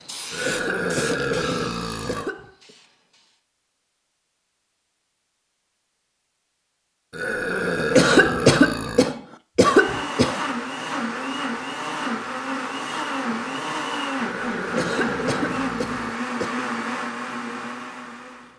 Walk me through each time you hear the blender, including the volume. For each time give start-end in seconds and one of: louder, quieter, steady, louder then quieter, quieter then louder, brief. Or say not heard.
9.7-18.5 steady.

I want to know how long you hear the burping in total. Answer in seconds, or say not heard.
6 s.